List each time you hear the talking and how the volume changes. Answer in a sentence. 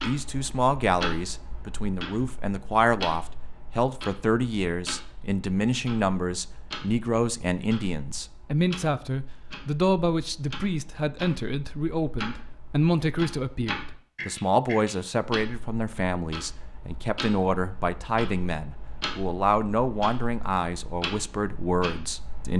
You can hear the talking from 0.1 to 22.5 s, at a steady volume.